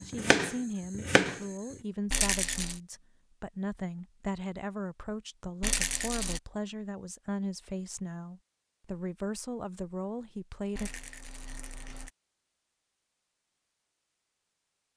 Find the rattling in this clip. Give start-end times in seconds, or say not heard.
2.1-2.8, 5.6-6.4, 10.8-12.1.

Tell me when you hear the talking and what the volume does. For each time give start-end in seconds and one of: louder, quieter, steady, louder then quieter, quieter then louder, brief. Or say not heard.
0.0-10.9 steady.